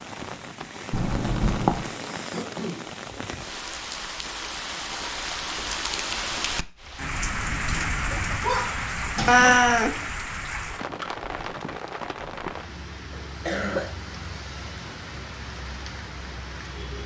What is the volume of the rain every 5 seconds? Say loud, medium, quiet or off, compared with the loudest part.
medium, loud, medium, medium.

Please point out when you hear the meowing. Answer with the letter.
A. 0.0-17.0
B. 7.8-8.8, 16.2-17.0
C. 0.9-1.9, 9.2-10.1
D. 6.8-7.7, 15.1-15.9
C.